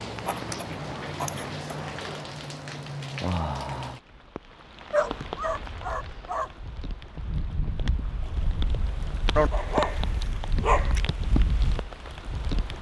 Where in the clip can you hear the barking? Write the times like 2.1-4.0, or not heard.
0.2-2.1, 4.9-6.5, 9.3-11.1.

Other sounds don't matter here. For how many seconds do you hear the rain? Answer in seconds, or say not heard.
13 s.